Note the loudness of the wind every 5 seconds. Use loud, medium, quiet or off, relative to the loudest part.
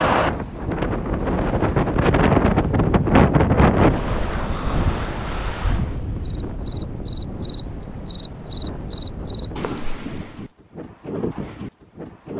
loud, quiet, quiet.